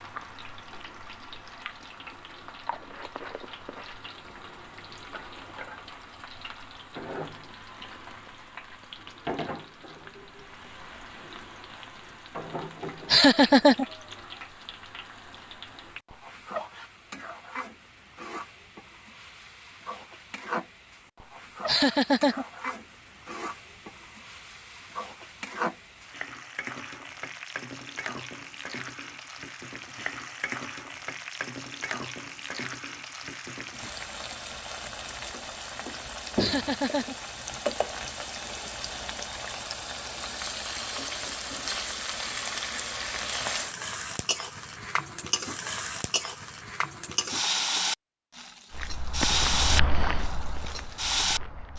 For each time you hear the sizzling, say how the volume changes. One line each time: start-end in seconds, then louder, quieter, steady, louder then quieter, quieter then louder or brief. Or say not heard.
0.0-51.7 louder.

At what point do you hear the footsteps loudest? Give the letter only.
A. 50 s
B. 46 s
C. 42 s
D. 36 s
A.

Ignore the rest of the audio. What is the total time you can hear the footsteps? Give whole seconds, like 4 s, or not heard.
3 s.